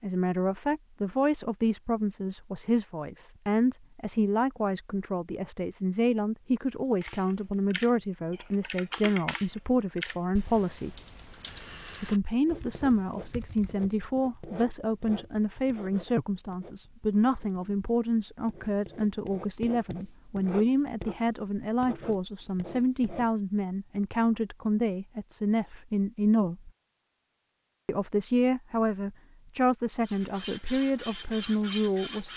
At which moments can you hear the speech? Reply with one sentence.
You can hear the speech from 0.0 to 11.0 s, from 12.0 to 26.7 s and from 27.9 to 32.3 s.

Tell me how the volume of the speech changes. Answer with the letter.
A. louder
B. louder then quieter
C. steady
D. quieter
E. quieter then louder
C.